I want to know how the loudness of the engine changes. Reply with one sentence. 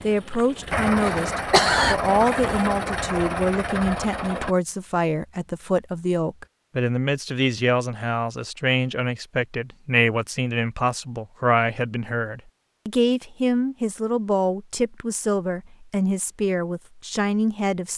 The volume of the engine stays about the same.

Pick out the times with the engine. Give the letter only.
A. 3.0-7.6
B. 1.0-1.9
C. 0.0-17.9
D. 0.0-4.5
D.